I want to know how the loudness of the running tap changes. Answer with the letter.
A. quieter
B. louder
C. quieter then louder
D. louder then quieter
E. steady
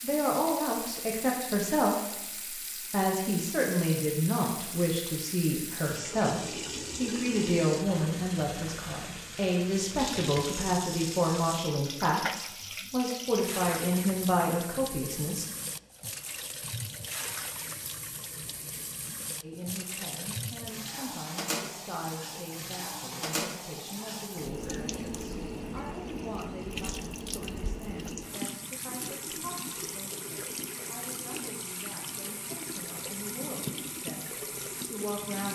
E.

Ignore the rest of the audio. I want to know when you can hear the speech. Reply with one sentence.
The speech can be heard from 0.0 to 15.4 s and from 19.4 to 35.5 s.